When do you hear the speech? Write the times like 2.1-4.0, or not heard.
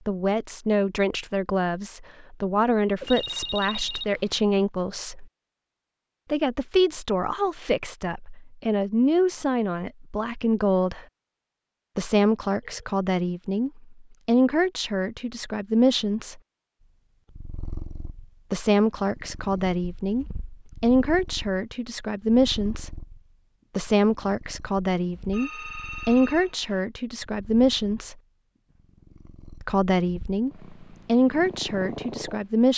0.1-5.2, 6.3-11.1, 11.9-16.4, 18.5-22.9, 23.8-28.1, 29.6-32.7.